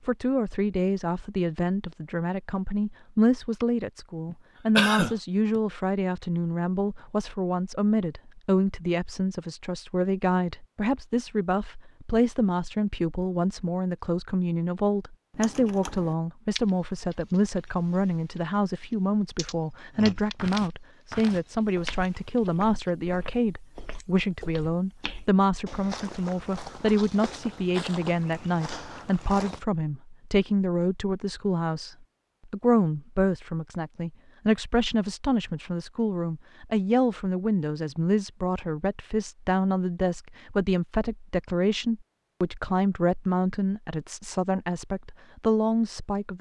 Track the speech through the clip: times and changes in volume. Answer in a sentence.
The speech can be heard from 0.1 to 46.3 s, at a steady volume.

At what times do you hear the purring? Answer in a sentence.
You can't hear the purring here.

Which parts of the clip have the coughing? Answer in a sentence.
You can hear the coughing from 4.3 to 5.6 s.